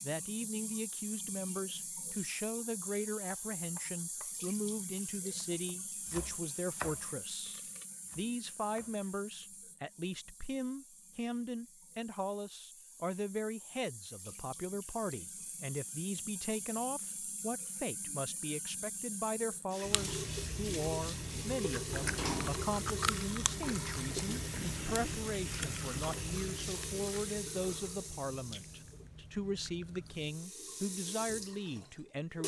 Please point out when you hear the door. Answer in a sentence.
You can hear the door from 21.9 to 22.6 s.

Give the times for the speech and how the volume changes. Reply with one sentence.
You can hear the speech from 0.0 to 32.4 s, at a steady volume.